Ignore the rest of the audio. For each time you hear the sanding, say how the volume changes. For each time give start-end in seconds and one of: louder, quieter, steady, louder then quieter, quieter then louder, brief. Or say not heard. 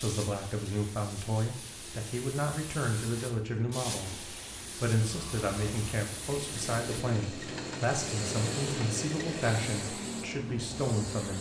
not heard.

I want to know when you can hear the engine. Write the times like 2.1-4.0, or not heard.
5.0-11.3.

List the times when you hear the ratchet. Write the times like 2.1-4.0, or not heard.
not heard.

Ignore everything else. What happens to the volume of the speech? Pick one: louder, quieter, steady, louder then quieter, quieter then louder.
steady.